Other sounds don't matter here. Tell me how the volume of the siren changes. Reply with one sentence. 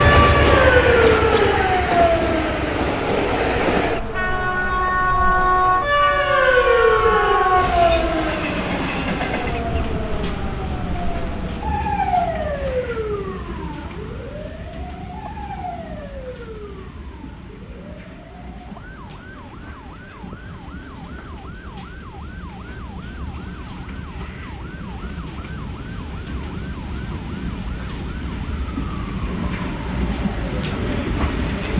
The volume of the siren goes down.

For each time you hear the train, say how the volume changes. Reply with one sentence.
The train can be heard from 0.0 to 31.7 s, getting quieter then louder.